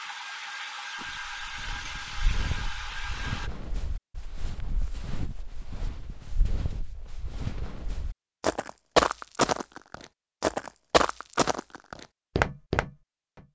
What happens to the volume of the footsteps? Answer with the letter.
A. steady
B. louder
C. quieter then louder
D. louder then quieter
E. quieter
B.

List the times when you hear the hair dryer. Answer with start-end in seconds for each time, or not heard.
0.0-3.5.